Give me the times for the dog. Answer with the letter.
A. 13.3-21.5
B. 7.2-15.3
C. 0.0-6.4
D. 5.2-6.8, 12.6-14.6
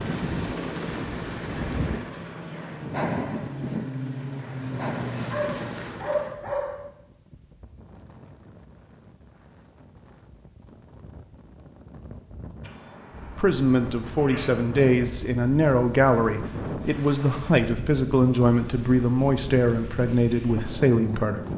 D.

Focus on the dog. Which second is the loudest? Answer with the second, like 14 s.
6 s.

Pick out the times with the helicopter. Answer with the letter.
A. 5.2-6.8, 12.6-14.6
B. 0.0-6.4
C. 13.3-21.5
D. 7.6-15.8
B.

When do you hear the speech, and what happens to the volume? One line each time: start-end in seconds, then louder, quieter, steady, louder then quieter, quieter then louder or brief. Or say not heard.
13.3-21.5 steady.